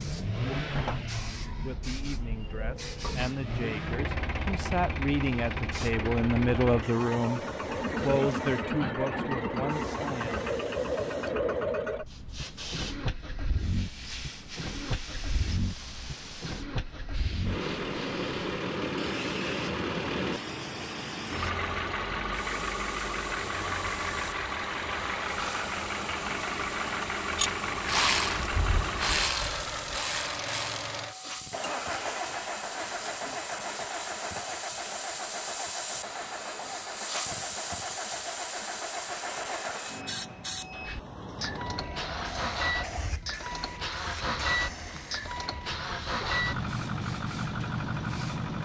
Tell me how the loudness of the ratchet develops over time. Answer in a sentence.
The loudness of the ratchet goes down.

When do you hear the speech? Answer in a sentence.
You can hear the speech from 1.6 to 10.4 s.